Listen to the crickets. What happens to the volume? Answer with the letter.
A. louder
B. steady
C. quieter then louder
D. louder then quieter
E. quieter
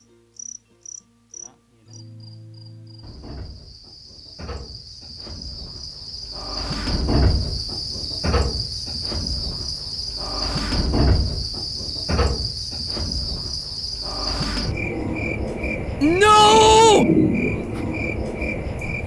A.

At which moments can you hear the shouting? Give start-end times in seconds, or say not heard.
16.0-17.1.